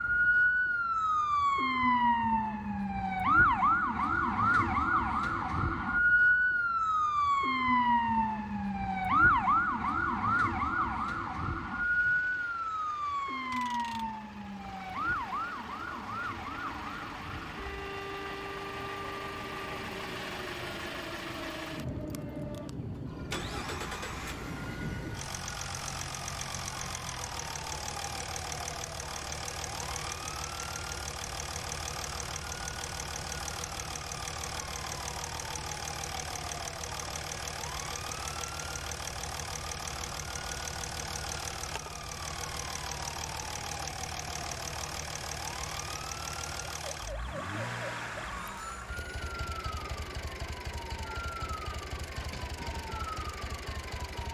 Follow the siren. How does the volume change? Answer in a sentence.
The loudness of the siren goes down.